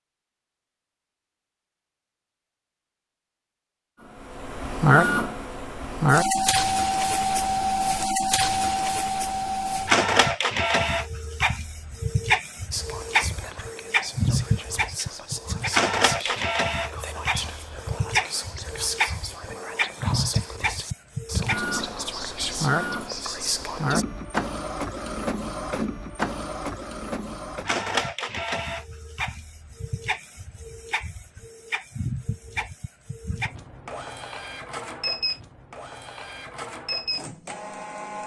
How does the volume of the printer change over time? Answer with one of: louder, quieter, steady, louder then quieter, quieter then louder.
quieter.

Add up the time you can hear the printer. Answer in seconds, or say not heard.
34 s.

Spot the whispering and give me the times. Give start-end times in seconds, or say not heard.
12.7-24.1.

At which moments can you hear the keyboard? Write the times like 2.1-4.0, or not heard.
not heard.